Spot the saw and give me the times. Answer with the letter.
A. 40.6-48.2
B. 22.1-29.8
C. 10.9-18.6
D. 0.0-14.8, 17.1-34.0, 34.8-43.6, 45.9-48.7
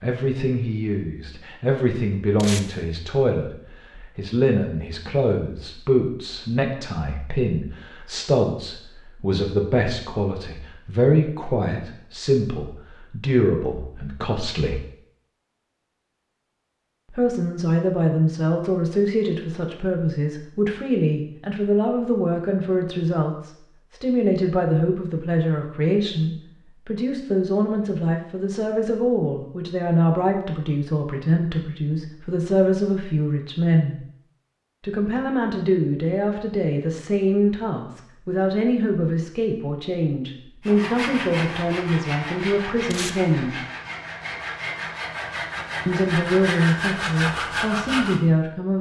A.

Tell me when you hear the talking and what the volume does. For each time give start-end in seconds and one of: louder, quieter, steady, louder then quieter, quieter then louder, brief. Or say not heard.
0.0-14.8 steady
17.1-34.0 steady
34.8-43.6 steady
45.9-48.7 brief.